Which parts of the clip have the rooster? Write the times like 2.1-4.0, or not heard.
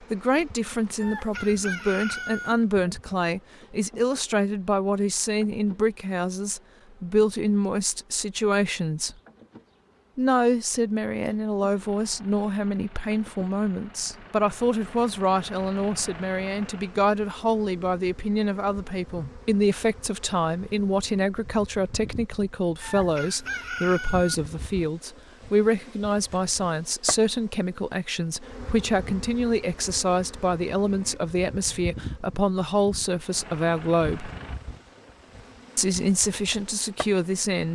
1.0-2.5, 22.8-24.4.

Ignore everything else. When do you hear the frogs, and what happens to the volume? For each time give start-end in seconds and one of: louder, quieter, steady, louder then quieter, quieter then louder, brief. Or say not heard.
not heard.